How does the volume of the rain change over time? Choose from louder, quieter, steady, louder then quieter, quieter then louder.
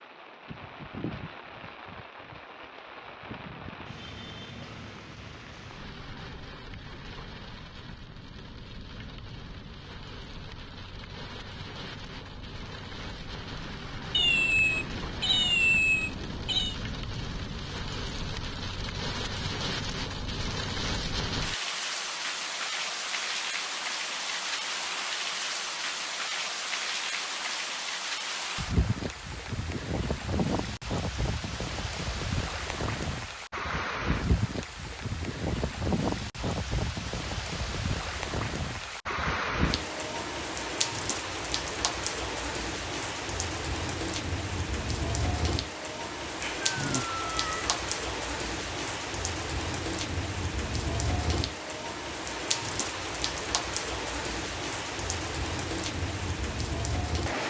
louder.